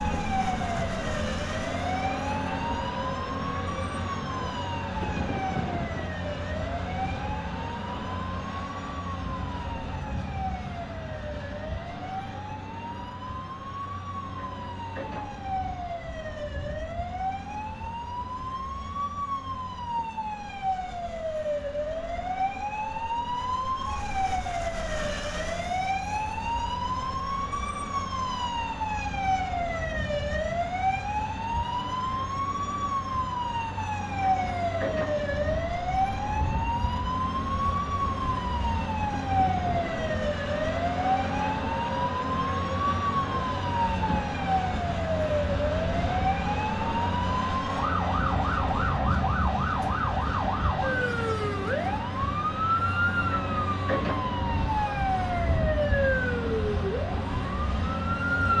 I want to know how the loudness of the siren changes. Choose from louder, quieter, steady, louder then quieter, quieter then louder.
louder.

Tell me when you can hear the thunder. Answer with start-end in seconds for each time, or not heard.
5.0-6.1, 39.0-40.0.